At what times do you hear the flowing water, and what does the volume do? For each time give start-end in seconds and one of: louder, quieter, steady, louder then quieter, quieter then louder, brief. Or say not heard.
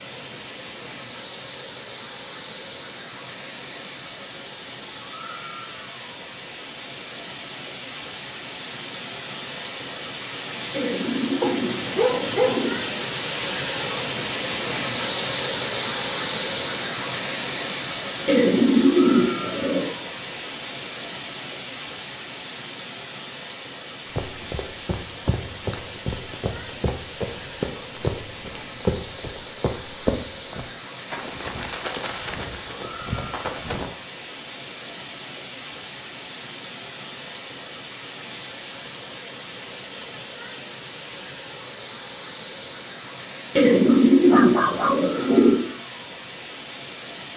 0.0-47.3 louder then quieter.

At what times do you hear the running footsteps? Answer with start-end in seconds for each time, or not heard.
24.1-34.0.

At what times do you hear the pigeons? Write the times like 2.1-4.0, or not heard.
10.7-12.8, 18.2-19.9, 43.5-45.5.